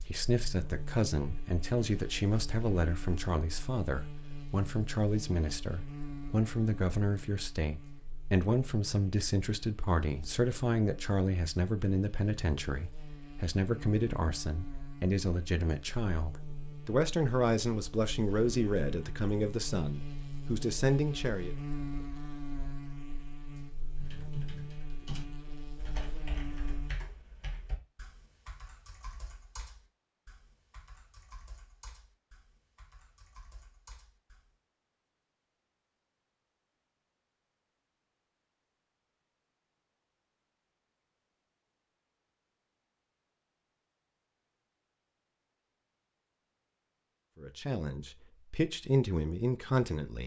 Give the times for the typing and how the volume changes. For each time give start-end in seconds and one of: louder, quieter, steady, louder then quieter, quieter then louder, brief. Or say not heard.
23.9-34.5 quieter.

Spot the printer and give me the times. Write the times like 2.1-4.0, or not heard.
not heard.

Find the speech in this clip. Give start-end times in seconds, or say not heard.
0.0-21.6, 47.4-50.2.